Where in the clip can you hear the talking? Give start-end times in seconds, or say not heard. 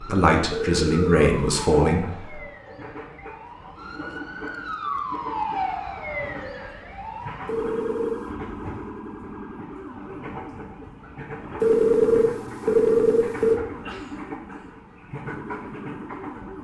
0.0-2.4.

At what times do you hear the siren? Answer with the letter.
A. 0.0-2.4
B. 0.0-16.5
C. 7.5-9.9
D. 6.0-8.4
B.